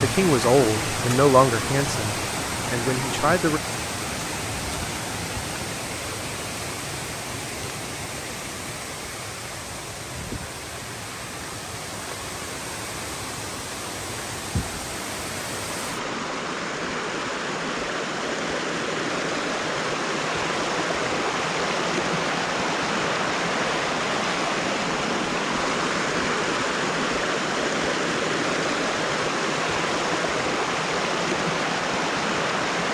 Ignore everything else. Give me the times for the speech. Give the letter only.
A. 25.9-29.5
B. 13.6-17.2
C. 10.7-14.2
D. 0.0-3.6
D.